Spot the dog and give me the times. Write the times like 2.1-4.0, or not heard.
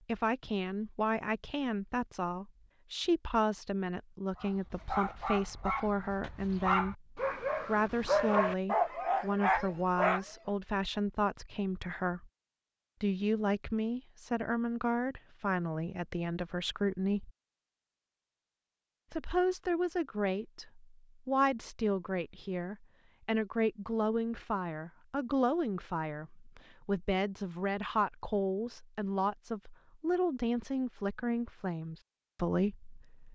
4.3-10.2.